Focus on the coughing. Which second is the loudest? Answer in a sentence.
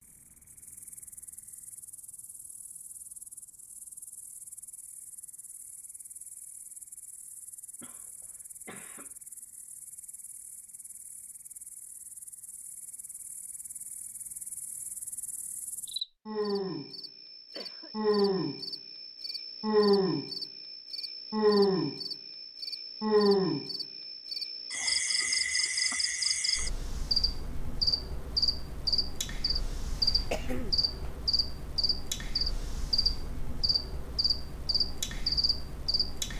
The loudest moment of the coughing is at 30 seconds.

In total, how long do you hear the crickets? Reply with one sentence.
The crickets can be heard for 36 seconds in total.